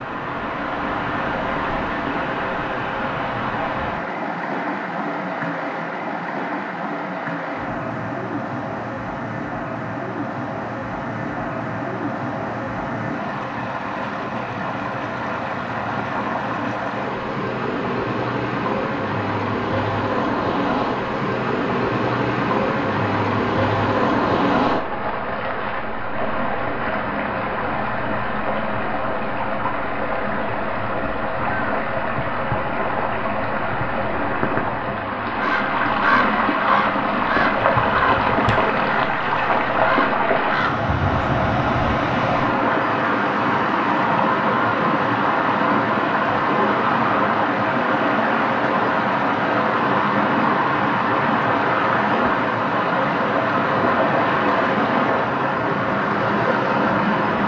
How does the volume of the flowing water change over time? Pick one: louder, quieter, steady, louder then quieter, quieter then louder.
louder.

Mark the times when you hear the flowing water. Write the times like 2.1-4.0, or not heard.
0.0-57.4.